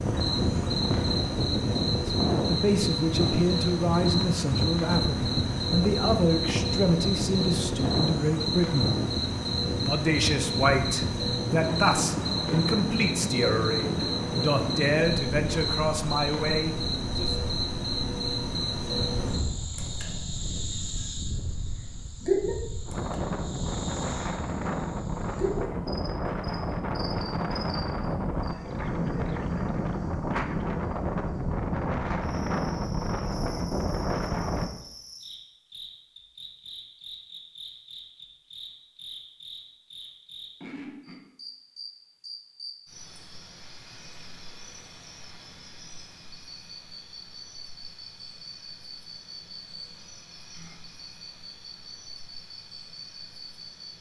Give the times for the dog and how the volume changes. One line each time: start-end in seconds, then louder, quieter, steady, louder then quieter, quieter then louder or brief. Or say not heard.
not heard.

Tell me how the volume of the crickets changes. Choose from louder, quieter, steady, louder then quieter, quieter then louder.
quieter.